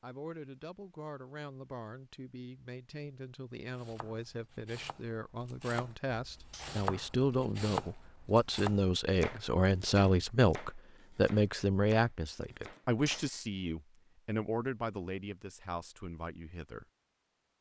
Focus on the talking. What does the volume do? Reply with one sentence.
The volume of the talking goes up, then down.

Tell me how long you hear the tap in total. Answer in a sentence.
The tap can't be heard in this clip.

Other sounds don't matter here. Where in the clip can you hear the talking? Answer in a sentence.
You can hear the talking from 0.0 to 16.9 s.